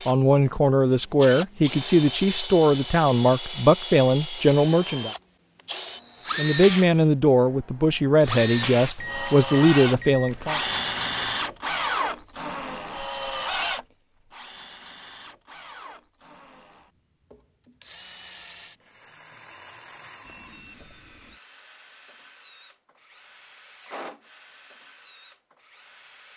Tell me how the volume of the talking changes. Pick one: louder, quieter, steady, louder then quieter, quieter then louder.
steady.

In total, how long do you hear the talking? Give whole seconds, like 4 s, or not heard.
9 s.